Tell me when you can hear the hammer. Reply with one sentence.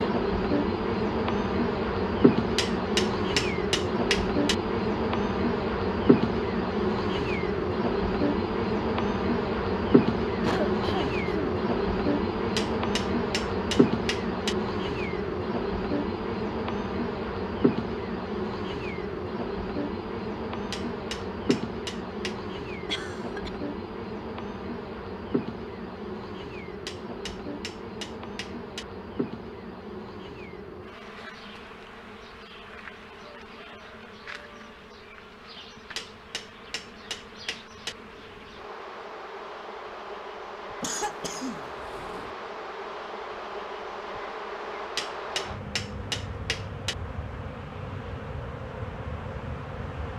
You can hear the hammer from 2.5 to 4.5 s, from 12.6 to 14.6 s, from 20.7 to 22.4 s, from 26.9 to 28.9 s, from 36.0 to 38.0 s and from 45.0 to 47.0 s.